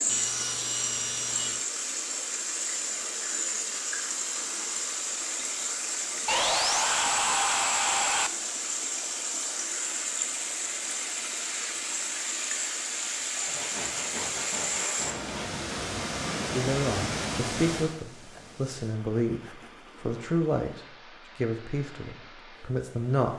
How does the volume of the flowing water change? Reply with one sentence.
The volume of the flowing water goes down.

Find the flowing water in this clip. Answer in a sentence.
The flowing water can be heard from 0.0 to 23.3 s.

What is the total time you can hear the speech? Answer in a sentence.
You can hear the speech for 7 seconds altogether.